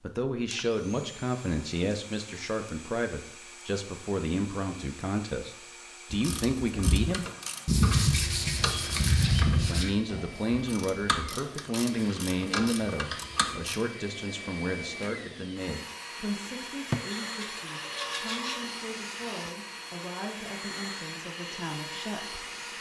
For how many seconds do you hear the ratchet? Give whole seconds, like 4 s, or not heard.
8 s.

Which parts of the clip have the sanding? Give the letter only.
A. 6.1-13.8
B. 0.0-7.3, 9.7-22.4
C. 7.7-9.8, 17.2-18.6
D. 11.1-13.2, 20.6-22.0
C.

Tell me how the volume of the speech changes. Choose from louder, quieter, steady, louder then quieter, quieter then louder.
quieter.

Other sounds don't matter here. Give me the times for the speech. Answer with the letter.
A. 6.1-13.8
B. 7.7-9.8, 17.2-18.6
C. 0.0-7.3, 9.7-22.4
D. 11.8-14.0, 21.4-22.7
C.